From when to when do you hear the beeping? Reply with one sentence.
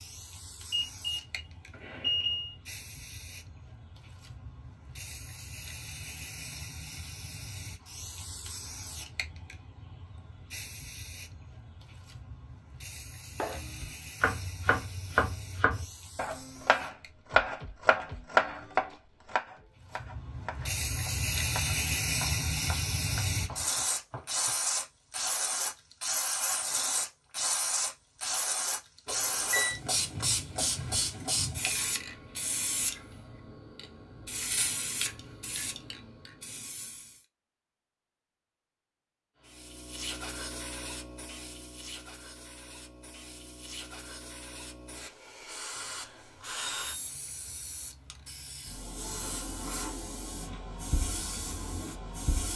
The beeping can be heard from 0.7 to 2.5 s, from 29.1 to 29.8 s and from 45.8 to 47.1 s.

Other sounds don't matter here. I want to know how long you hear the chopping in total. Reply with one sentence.
You can hear the chopping for 11 seconds altogether.